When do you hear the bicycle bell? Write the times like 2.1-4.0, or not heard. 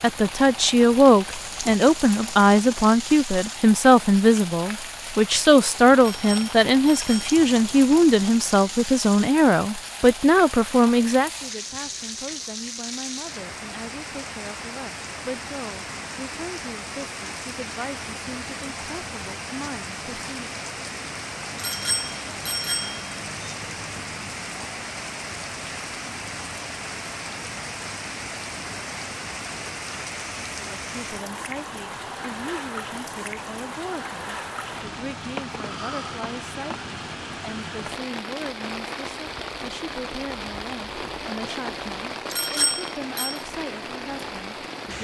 6.0-7.3, 21.6-23.5, 42.3-43.5.